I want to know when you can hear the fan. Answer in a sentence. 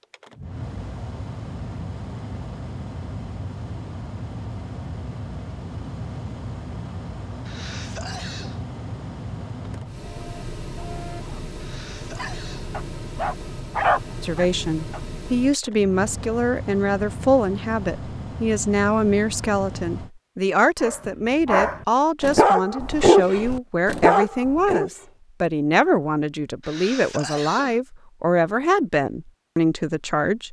You can hear the fan from 0.0 to 20.1 s.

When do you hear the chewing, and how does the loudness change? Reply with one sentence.
The chewing can't be heard in this clip.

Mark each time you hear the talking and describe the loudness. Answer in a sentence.
You can hear the talking from 14.2 to 30.4 s, at a steady volume.